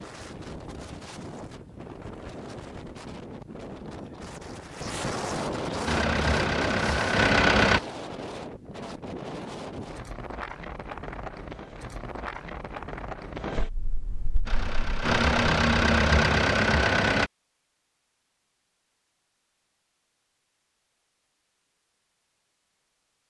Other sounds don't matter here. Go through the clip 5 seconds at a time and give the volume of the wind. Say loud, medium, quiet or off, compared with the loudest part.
medium, loud, medium, off, off.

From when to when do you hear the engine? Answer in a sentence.
You can hear the engine from 5.8 to 7.8 s and from 14.4 to 17.3 s.